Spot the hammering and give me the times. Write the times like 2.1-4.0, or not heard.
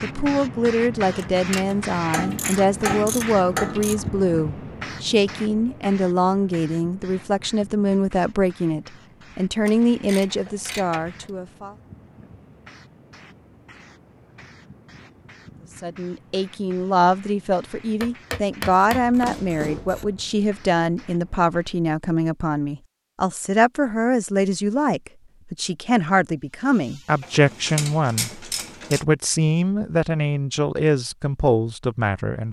18.0-19.9.